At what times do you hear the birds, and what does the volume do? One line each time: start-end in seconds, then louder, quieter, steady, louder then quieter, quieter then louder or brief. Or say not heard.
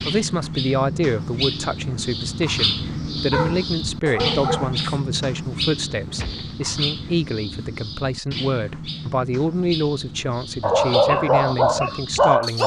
0.0-12.6 quieter.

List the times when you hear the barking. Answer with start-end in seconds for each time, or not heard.
3.3-5.0, 10.6-12.6.